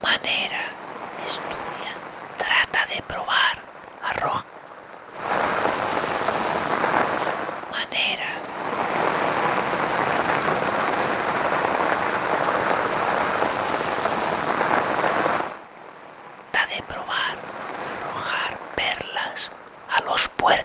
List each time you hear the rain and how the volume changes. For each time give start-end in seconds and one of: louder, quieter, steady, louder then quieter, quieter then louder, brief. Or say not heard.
0.0-20.6 louder then quieter.